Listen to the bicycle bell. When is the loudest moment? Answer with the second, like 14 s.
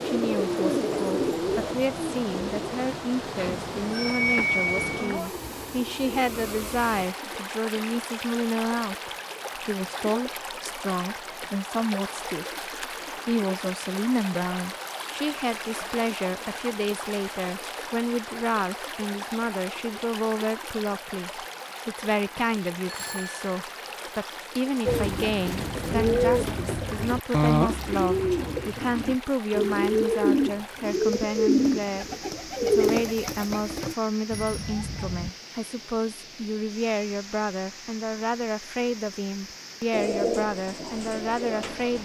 4 s.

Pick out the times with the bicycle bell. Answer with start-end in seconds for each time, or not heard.
3.4-5.2, 22.9-23.4, 34.3-35.3.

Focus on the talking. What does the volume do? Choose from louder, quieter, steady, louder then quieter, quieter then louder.
steady.